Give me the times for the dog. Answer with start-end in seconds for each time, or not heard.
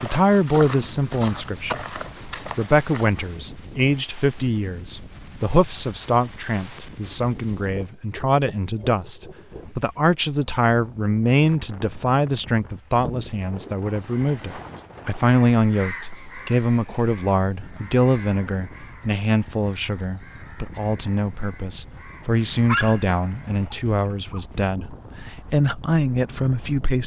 22.6-24.4.